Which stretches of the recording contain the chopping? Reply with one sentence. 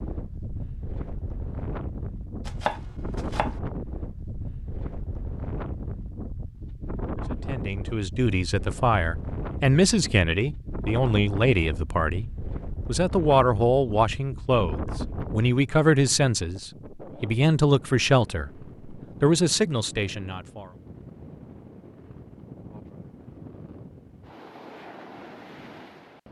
The chopping can be heard from 2.5 to 3.6 s.